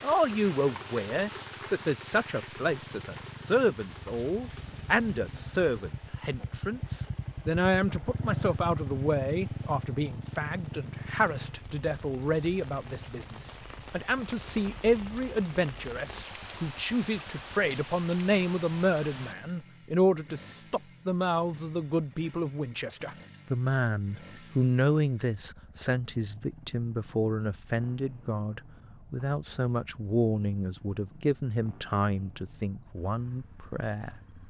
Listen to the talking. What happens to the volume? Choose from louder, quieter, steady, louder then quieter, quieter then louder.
steady.